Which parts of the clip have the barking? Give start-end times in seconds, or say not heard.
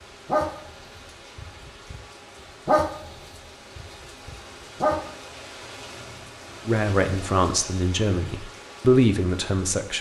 0.2-0.8, 1.4-2.0, 2.6-5.1.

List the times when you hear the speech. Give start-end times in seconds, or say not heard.
6.7-9.9.